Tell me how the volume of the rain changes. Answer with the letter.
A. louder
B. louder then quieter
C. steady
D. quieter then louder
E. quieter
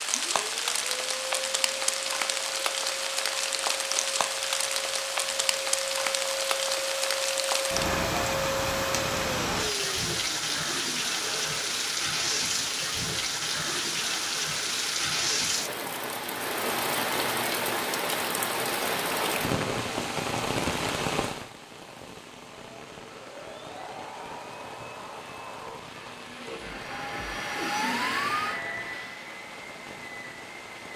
E.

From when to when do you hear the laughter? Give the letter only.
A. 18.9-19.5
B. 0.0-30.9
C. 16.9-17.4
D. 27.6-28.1
D.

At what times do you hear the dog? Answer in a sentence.
You can't hear the dog here.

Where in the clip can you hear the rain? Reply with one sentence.
The rain can be heard from 0.0 to 30.9 s.